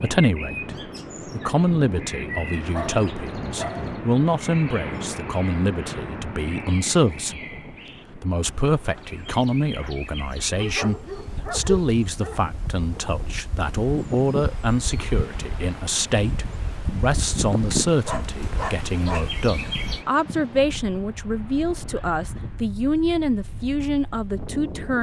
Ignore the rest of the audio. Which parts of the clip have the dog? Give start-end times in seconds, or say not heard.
2.7-4.0, 10.5-12.4, 17.5-19.2.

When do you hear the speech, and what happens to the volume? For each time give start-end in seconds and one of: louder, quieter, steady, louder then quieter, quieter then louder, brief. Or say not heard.
0.0-24.9 steady.